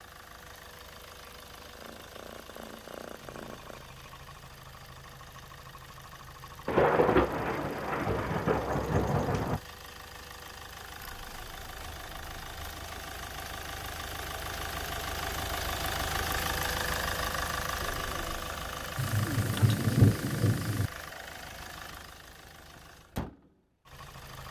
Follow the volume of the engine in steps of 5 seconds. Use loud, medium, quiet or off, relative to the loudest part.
quiet, quiet, medium, loud, medium.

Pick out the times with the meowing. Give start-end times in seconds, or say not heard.
1.5-3.9, 11.0-12.8, 17.8-18.4.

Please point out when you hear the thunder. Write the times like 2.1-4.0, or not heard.
6.7-9.6, 18.9-20.9.